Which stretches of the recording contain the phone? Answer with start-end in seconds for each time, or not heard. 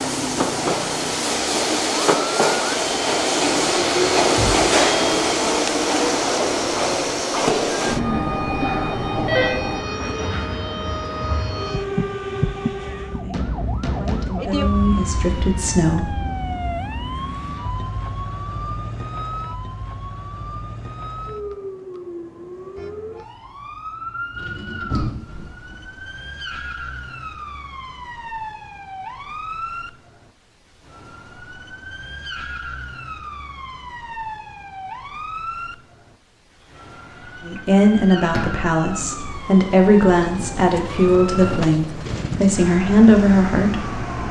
7.9-9.6.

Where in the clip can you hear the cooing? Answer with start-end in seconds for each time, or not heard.
not heard.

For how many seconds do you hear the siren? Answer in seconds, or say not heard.
44 s.